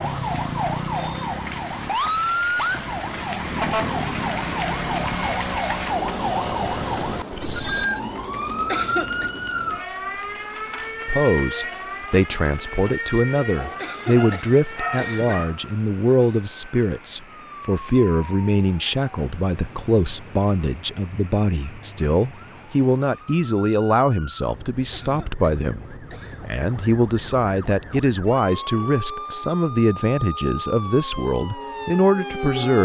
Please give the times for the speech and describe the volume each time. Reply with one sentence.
You can hear the speech from 11.1 to 32.7 s, at a steady volume.